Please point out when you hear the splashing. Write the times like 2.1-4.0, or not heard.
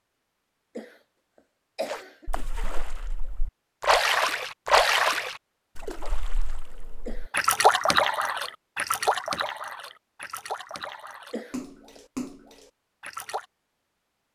1.9-13.4.